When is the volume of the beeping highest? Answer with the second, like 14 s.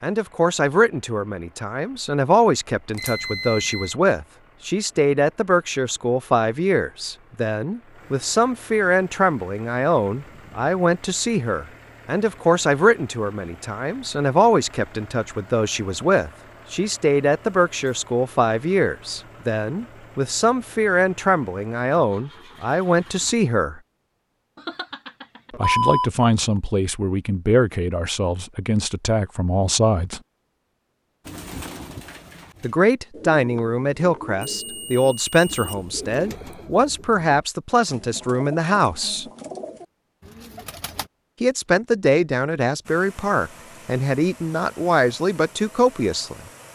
26 s.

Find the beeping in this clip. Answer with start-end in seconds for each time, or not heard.
3.0-3.9, 24.6-26.1, 34.5-36.6.